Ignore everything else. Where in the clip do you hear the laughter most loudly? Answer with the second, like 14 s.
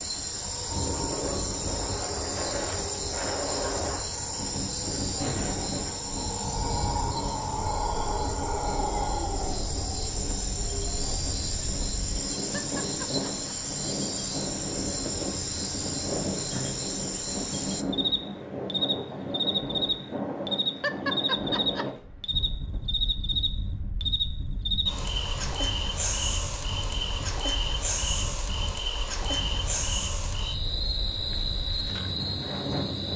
21 s.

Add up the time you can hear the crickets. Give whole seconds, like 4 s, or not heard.
33 s.